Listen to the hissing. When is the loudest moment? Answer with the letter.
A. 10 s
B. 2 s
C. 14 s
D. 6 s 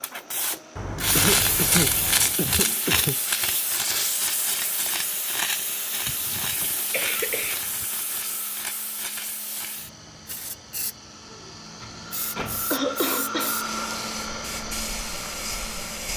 B.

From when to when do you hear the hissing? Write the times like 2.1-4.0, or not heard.
0.0-16.1.